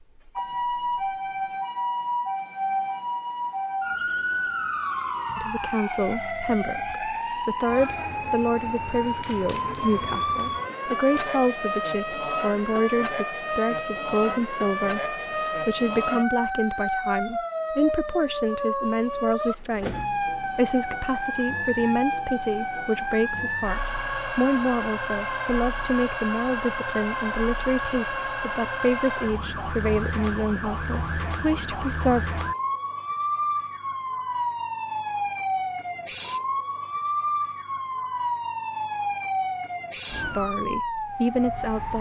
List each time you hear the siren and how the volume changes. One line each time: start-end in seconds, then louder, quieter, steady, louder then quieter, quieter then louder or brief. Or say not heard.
0.0-41.9 steady.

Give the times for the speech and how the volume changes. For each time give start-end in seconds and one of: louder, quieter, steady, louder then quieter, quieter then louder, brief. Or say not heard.
5.3-32.2 steady
40.3-41.9 brief.